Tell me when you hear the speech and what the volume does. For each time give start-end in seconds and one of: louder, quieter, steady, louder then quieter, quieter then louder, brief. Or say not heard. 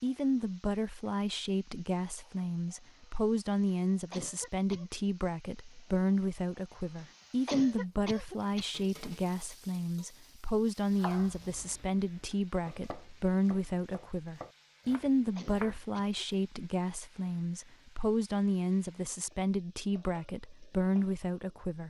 0.0-21.8 steady.